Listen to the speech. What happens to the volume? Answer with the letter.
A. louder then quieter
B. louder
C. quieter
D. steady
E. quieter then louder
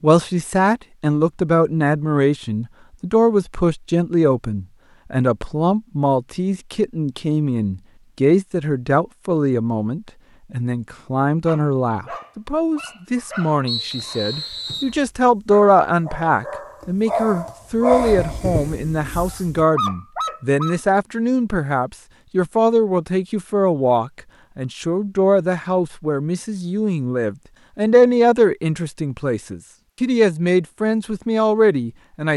D.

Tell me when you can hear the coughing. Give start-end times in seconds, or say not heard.
not heard.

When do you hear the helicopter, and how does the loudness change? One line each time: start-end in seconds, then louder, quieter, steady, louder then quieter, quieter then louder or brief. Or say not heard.
not heard.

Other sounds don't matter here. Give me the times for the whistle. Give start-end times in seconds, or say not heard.
13.7-14.9.